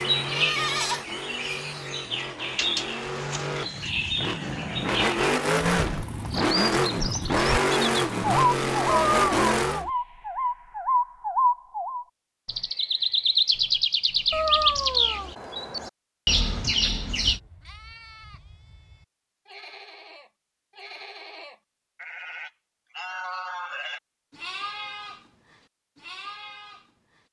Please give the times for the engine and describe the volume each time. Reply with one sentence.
The engine can be heard from 0.0 to 9.8 s, getting louder.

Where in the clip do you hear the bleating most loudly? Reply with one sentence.
The volume of the bleating peaks at 1 second.